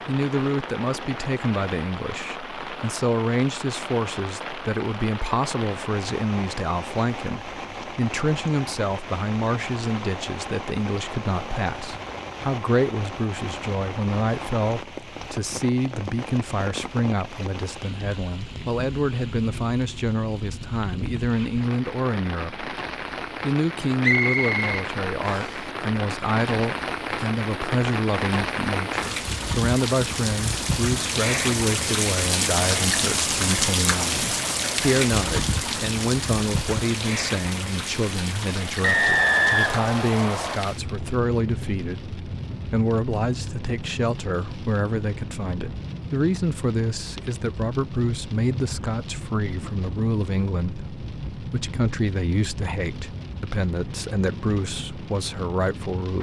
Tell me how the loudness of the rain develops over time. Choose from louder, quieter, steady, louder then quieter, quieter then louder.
louder then quieter.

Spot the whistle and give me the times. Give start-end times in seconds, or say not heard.
24.0-25.6, 38.8-40.6.